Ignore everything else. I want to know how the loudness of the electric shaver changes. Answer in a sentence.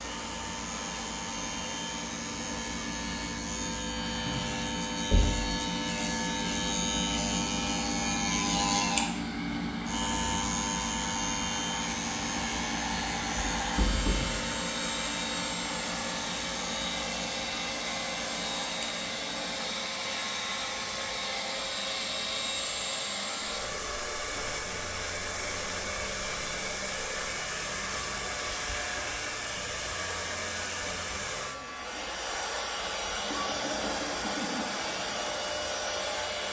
The loudness of the electric shaver goes down.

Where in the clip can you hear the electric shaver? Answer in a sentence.
The electric shaver can be heard from 0.0 to 36.4 s.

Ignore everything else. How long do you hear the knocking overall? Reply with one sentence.
The knocking can be heard for 2 seconds in total.